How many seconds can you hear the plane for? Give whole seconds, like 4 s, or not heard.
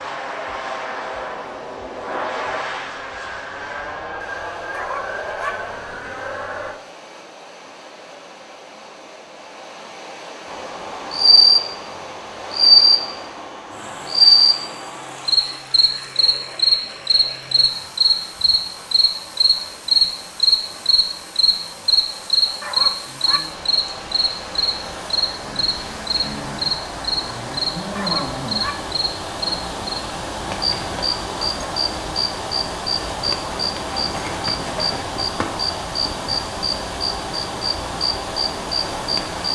7 s.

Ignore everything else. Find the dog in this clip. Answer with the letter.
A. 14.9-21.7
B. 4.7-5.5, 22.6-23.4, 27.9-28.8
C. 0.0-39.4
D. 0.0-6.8
B.